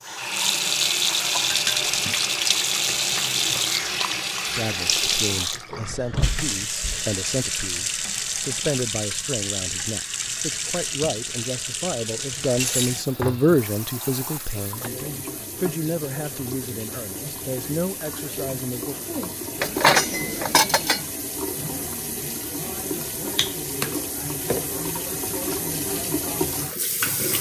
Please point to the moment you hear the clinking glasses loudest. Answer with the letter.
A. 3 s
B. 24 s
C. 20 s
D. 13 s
C.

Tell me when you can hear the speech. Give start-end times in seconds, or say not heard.
4.5-18.9.